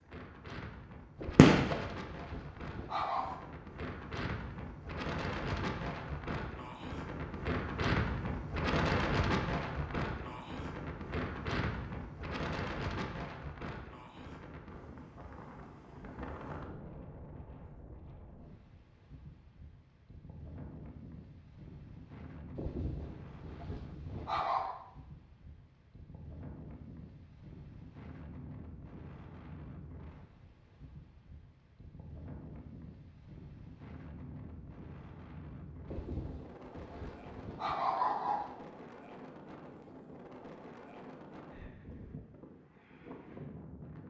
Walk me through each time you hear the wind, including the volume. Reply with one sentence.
The wind can be heard from 0.0 to 44.0 s, getting quieter.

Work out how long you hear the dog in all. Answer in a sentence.
You can hear the dog for 7 seconds altogether.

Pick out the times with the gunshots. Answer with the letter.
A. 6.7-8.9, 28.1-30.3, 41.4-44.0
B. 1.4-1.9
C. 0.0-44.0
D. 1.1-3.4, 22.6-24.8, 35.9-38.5
B.